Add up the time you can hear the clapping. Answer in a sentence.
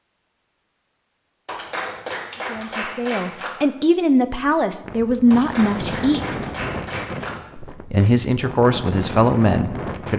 You can hear the clapping for 4 seconds altogether.